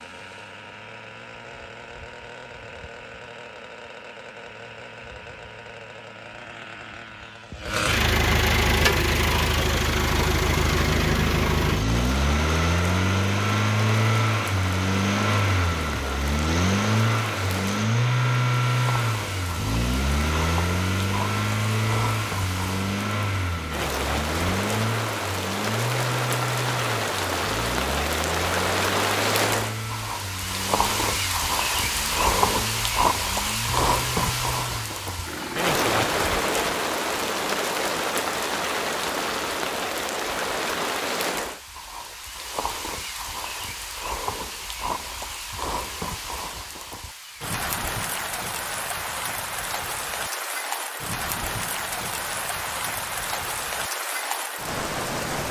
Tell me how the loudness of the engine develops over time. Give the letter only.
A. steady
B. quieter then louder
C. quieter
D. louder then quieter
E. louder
D.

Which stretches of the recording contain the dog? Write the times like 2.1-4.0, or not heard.
not heard.